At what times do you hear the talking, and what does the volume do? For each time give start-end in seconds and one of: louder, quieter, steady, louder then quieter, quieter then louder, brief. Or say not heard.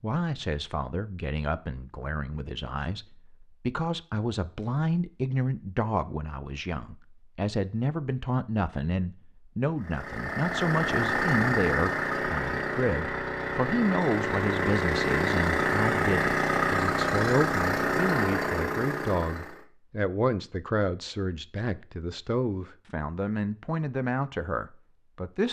0.0-25.4 steady.